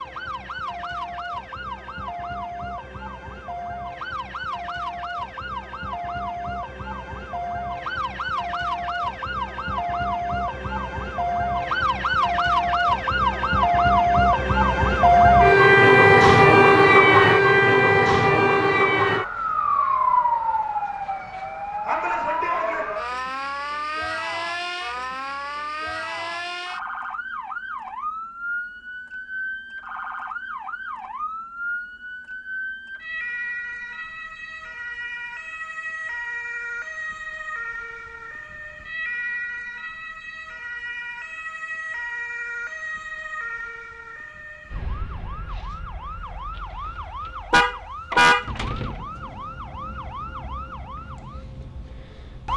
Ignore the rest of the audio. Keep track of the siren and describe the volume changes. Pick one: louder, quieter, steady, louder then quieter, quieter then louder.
louder then quieter.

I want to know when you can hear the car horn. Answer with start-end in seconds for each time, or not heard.
47.5-48.9.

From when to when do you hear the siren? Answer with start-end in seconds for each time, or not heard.
0.0-52.5.